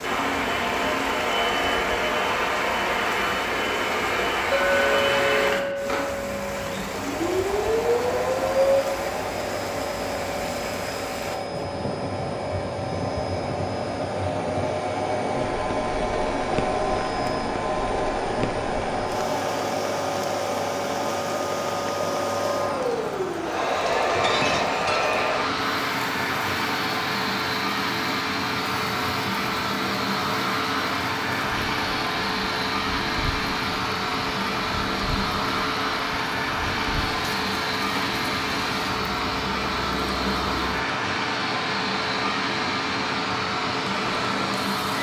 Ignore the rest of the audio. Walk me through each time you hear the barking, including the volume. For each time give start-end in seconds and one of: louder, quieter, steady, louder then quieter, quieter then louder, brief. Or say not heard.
not heard.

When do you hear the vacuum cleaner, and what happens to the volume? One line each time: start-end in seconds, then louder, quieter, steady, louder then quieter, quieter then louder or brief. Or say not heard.
0.0-44.9 steady.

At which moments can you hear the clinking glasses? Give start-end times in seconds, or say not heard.
4.5-6.6, 23.9-25.2.